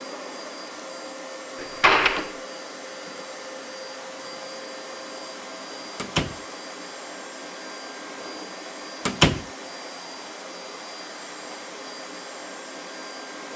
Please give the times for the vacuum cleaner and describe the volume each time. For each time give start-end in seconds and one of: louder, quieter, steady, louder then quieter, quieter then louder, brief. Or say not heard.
0.0-13.5 steady.